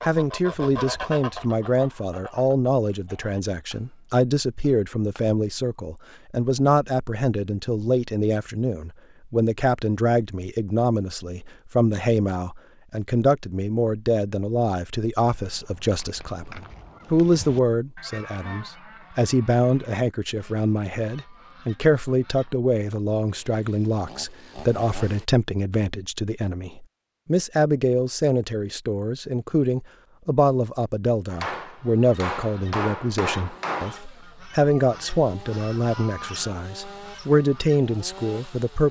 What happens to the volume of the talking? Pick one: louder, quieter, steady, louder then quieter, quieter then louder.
steady.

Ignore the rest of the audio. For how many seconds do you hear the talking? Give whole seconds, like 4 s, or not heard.
39 s.